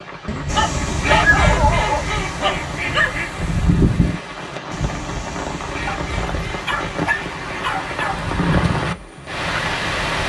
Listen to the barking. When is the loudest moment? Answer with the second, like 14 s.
1 s.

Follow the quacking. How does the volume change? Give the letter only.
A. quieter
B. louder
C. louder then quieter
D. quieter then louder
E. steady
A.